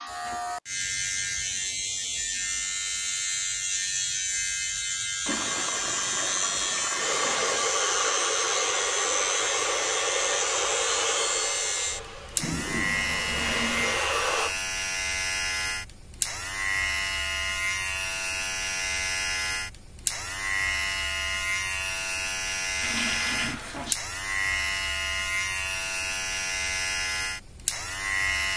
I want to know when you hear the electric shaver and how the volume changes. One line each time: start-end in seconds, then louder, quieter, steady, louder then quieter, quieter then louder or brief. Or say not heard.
0.0-28.5 steady.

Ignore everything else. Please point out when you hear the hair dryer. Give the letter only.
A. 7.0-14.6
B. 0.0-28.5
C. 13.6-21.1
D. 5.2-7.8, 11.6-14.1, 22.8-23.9
A.